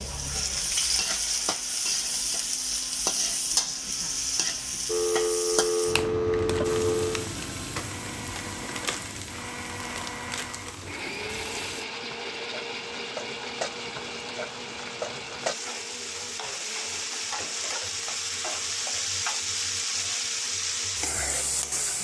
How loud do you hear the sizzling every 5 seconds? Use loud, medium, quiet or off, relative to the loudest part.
loud, medium, medium, loud, loud.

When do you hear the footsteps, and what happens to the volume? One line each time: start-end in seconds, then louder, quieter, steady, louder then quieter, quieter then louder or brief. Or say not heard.
not heard.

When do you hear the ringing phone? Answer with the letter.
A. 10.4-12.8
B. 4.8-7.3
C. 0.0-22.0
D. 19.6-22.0
B.